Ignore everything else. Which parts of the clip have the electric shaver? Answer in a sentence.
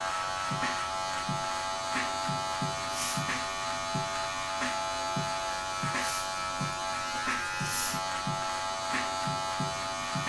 The electric shaver can be heard from 0.0 to 10.2 s.